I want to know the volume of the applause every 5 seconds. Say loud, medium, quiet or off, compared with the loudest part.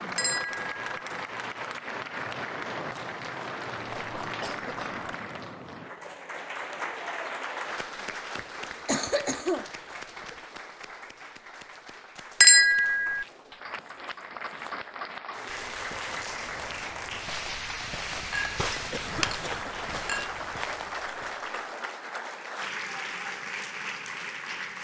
loud, loud, medium, loud, loud.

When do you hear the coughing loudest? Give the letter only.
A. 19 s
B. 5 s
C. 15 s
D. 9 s
D.